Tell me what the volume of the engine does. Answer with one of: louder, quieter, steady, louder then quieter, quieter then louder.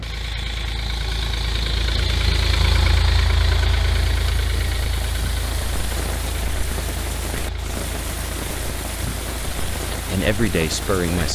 quieter.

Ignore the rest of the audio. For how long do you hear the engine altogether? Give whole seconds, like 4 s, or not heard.
11 s.